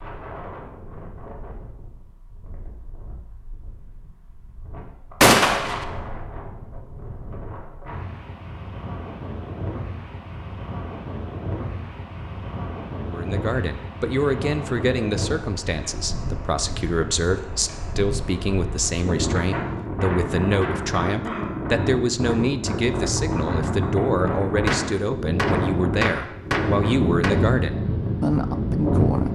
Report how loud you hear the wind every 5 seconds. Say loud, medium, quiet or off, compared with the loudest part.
quiet, quiet, medium, medium, loud, loud.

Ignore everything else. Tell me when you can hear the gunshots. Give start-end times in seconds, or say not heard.
5.2-5.8, 24.6-27.4.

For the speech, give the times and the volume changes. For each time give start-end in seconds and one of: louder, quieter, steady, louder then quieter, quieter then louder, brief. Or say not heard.
13.1-29.2 steady.